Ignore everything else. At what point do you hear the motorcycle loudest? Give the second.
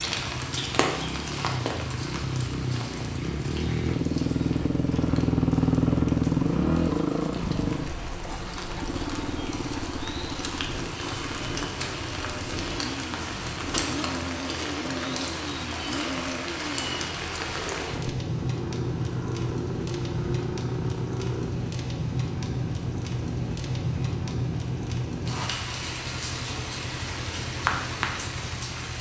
6 s.